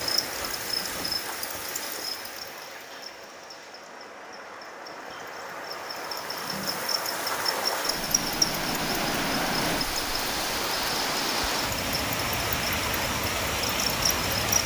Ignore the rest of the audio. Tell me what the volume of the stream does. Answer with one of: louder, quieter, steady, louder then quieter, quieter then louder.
louder.